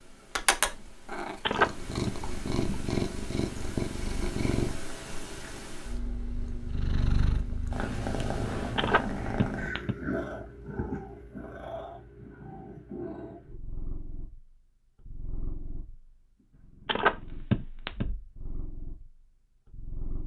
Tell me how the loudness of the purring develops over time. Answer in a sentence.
The volume of the purring goes down.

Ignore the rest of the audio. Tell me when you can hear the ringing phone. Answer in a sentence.
The ringing phone can be heard from 1.4 to 2.1 s, from 8.8 to 9.9 s and from 16.9 to 18.1 s.